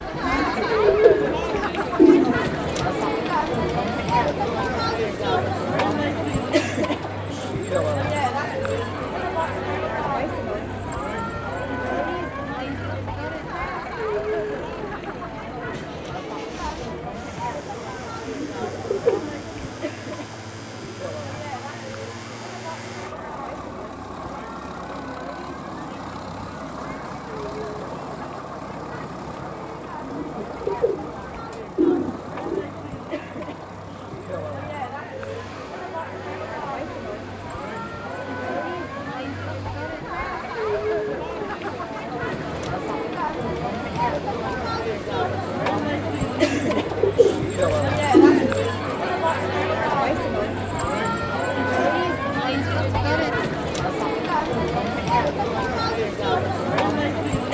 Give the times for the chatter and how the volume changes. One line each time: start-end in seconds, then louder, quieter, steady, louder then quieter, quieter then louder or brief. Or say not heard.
0.0-57.4 quieter then louder.